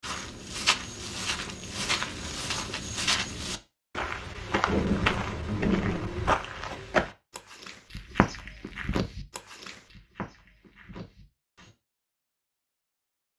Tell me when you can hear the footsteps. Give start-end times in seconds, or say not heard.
0.0-11.7.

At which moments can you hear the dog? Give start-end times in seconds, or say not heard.
not heard.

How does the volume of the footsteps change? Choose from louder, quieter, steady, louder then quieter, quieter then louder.
quieter.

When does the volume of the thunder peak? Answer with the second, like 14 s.
5 s.